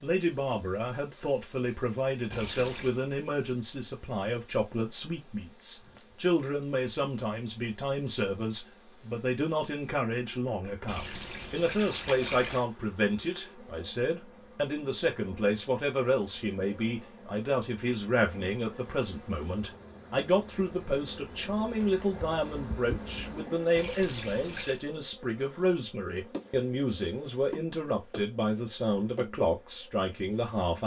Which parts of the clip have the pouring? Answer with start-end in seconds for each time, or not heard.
2.3-3.0, 10.8-12.7, 23.8-24.8.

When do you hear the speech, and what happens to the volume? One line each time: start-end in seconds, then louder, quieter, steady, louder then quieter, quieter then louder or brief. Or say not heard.
0.0-30.8 steady.